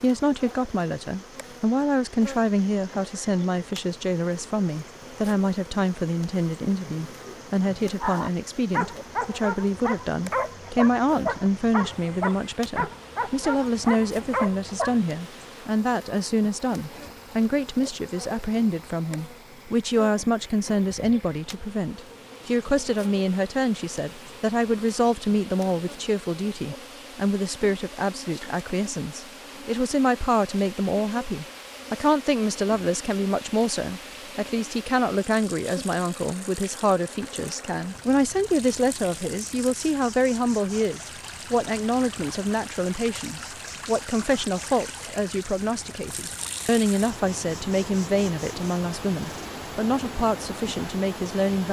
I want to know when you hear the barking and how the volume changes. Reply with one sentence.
The barking can be heard from 6.8 to 15.1 s, at a steady volume.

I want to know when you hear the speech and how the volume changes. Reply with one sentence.
You can hear the speech from 0.0 to 51.6 s, at a steady volume.